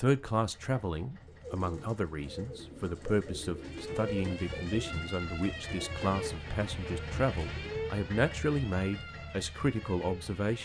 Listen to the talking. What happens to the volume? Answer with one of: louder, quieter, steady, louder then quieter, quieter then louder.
steady.